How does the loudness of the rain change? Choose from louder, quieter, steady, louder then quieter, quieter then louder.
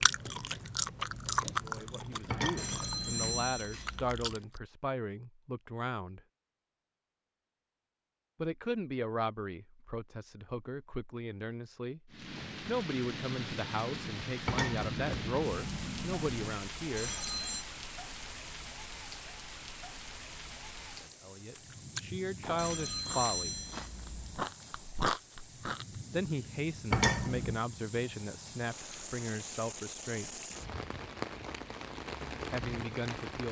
quieter then louder.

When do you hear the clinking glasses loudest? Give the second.
27 s.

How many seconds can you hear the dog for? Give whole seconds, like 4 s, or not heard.
not heard.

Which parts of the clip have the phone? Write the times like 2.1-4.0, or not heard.
2.5-4.2, 16.9-17.6, 22.6-24.4.